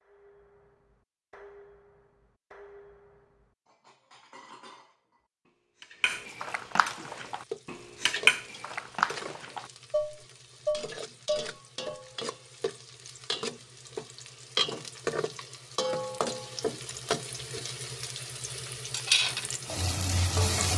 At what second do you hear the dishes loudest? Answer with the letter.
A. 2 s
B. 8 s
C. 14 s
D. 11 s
B.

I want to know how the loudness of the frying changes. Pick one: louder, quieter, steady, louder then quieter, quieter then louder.
louder.